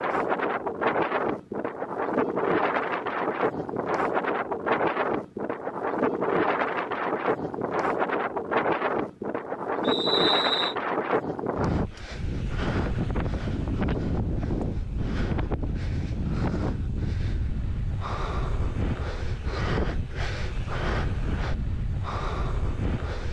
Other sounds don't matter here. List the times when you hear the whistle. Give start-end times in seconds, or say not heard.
9.8-10.8.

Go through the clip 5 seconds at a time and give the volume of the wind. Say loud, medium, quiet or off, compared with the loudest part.
loud, loud, loud, medium, medium.